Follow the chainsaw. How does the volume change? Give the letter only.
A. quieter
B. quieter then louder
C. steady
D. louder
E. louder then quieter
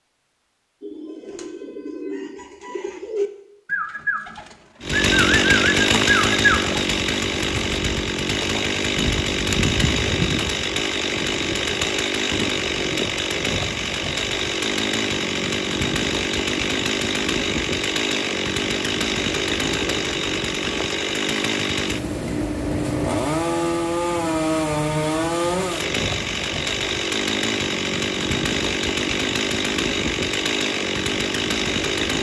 C.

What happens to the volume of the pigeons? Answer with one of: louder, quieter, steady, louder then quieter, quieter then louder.
louder.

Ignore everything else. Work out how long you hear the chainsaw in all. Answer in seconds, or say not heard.
27 s.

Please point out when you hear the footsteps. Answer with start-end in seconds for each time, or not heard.
not heard.